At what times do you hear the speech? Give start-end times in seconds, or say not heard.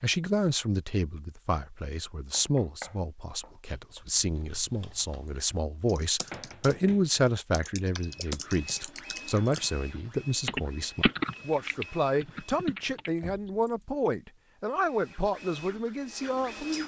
0.0-16.8.